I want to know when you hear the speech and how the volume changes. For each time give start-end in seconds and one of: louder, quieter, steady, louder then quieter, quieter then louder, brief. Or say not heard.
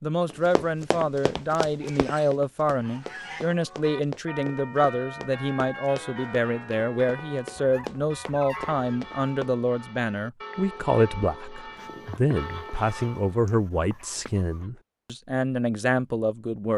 0.0-16.7 steady.